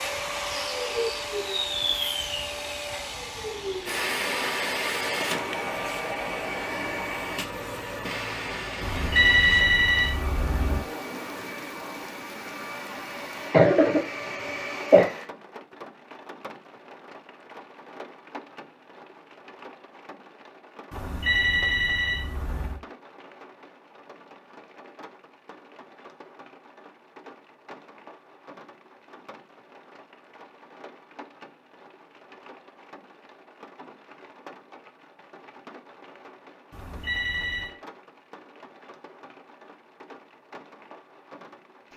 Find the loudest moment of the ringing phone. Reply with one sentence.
The loudest moment of the ringing phone is at 9 seconds.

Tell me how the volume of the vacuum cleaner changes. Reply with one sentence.
The volume of the vacuum cleaner goes down.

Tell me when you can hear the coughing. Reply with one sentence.
You can hear the coughing from 13.5 to 15.1 s.